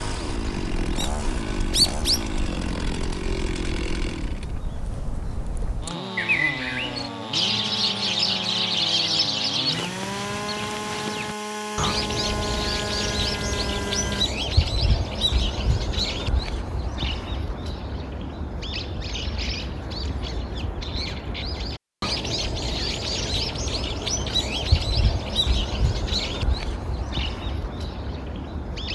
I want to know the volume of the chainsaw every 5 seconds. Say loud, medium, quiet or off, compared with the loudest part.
loud, loud, loud, off, off, off.